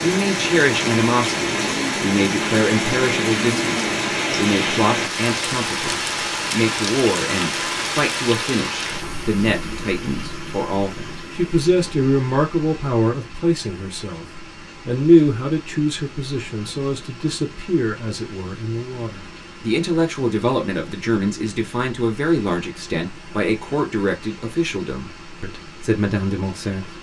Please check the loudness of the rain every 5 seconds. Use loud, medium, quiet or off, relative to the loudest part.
loud, loud, quiet, quiet, quiet, quiet.